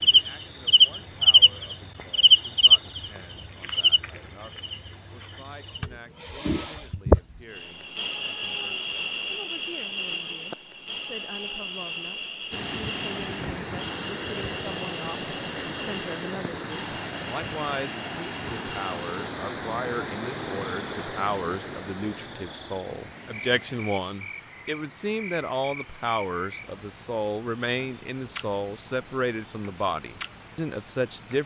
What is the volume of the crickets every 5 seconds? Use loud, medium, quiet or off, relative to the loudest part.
loud, medium, quiet, quiet, quiet, quiet, quiet.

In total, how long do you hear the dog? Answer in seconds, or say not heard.
not heard.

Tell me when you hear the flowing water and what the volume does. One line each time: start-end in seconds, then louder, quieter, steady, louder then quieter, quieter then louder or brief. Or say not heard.
12.5-31.4 quieter.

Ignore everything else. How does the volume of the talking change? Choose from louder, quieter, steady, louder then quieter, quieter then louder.
louder.